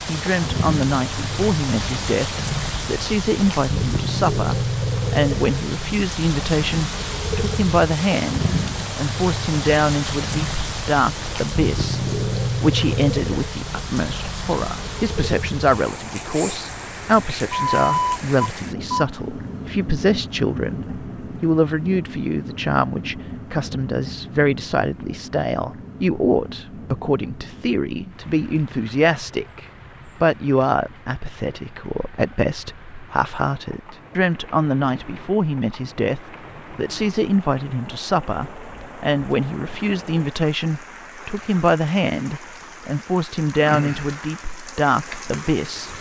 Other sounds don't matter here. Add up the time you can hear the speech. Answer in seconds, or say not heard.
46 s.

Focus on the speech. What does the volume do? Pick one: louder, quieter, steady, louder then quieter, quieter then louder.
steady.